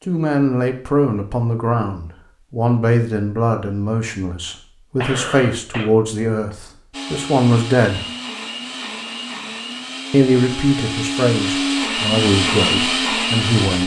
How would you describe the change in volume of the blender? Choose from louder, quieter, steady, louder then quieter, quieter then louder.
louder.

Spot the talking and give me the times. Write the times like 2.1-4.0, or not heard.
0.0-8.0, 10.1-13.8.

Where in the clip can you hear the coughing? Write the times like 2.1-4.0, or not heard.
5.0-5.9.